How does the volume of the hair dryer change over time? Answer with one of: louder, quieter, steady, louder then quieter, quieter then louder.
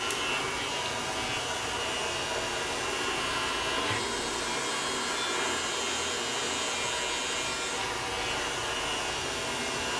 steady.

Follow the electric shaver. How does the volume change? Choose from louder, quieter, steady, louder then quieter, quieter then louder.
steady.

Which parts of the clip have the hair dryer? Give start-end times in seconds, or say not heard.
0.0-9.9.